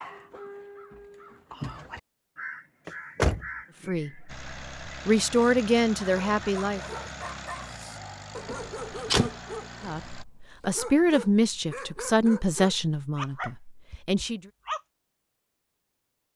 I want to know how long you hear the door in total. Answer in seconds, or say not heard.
2 s.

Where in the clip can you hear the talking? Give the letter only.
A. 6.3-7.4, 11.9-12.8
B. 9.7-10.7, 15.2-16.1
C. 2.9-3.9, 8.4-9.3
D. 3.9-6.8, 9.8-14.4
D.